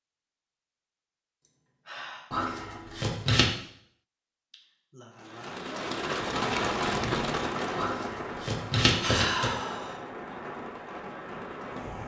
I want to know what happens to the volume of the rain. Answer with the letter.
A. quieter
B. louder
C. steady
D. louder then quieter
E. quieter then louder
A.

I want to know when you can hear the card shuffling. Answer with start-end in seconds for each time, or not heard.
2.3-3.5, 7.8-9.5.